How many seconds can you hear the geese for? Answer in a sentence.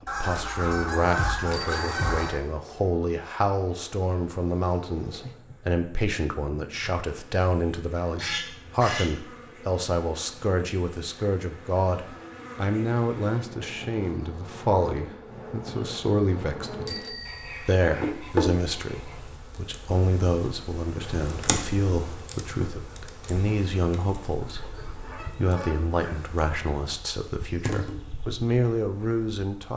You can hear the geese for 7 seconds altogether.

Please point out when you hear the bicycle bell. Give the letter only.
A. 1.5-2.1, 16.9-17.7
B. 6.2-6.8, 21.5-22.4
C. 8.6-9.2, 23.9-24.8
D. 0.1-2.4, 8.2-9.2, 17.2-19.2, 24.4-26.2
A.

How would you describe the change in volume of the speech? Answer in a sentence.
The volume of the speech stays about the same.